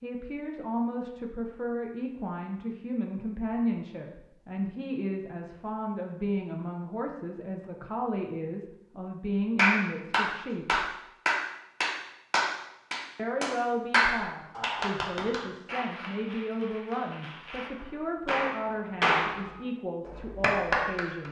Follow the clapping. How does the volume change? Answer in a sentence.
The volume of the clapping goes down, then up.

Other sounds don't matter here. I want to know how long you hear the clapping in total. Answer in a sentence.
The clapping can be heard for 12 seconds in total.